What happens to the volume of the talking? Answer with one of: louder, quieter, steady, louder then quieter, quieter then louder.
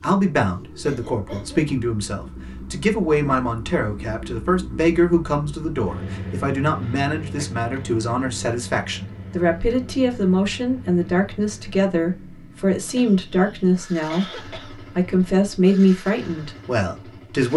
steady.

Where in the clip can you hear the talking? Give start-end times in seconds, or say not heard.
0.0-17.5.